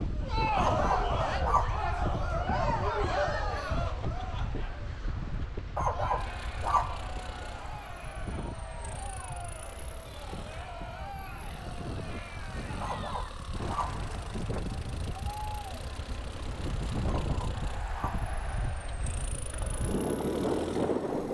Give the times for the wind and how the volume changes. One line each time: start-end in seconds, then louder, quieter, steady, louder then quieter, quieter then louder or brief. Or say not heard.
0.0-21.2 quieter then louder.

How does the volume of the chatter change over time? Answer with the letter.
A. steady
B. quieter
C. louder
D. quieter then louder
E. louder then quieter
B.